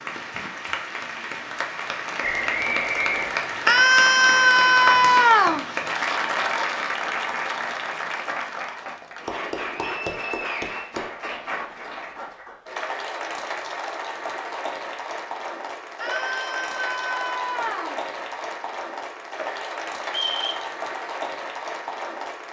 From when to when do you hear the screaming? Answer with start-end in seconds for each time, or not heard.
3.6-5.7, 16.0-17.9.